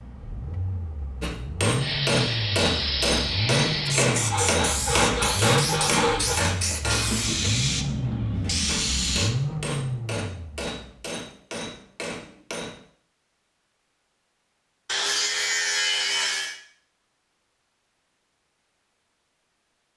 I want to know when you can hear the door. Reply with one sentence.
The door can't be heard in this clip.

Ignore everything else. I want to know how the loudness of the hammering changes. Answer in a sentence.
The loudness of the hammering goes down.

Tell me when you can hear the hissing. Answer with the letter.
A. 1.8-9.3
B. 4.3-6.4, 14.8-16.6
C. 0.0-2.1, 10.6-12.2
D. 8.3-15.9
A.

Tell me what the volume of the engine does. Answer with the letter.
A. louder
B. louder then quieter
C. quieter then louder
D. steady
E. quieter
D.